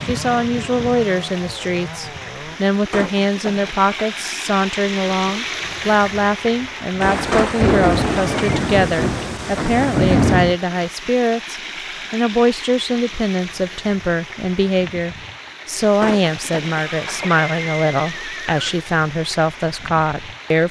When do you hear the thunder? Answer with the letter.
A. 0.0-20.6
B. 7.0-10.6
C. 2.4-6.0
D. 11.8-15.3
B.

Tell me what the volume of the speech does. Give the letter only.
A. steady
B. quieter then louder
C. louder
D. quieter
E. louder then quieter
A.